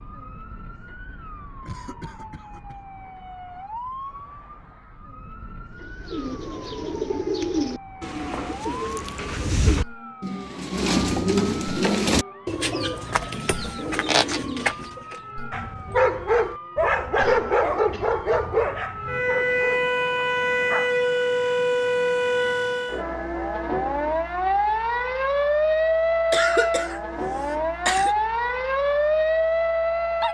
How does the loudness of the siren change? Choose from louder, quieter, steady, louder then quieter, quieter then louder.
louder.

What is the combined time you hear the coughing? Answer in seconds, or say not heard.
4 s.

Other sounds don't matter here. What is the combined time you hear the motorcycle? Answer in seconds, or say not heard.
not heard.